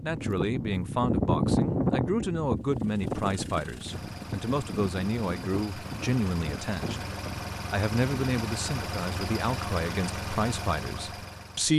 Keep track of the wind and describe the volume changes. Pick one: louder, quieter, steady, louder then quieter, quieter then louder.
quieter.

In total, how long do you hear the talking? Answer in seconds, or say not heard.
11 s.